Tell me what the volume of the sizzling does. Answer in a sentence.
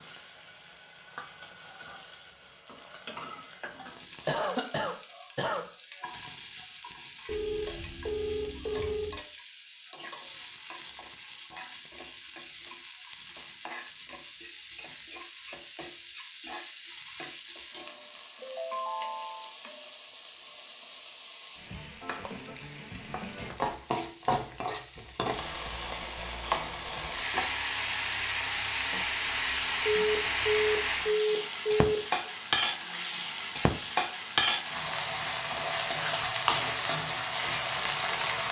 The loudness of the sizzling goes up.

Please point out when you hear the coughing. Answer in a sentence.
The coughing can be heard from 4.2 to 5.7 s.